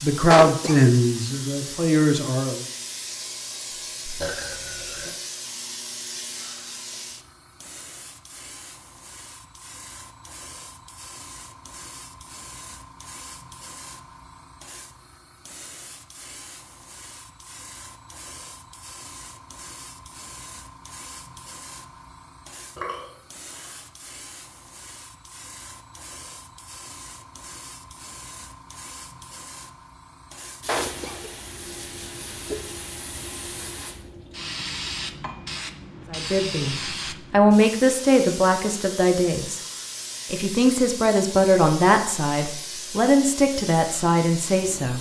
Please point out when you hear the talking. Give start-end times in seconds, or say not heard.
0.0-2.6, 36.1-39.6, 40.3-44.9.